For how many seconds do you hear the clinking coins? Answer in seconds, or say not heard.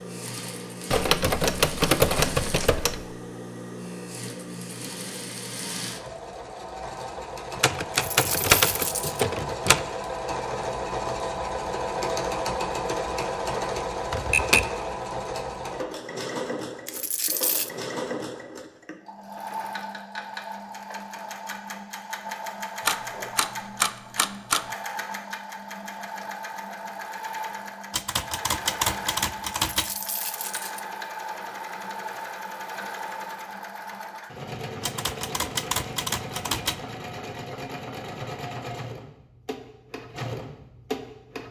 3 s.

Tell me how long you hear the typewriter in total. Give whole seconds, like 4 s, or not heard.
11 s.